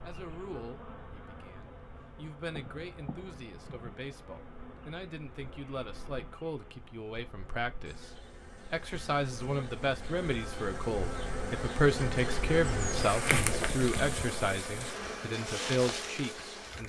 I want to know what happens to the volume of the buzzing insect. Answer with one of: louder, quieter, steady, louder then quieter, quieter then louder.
louder.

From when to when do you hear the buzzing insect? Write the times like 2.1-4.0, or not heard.
0.0-16.8.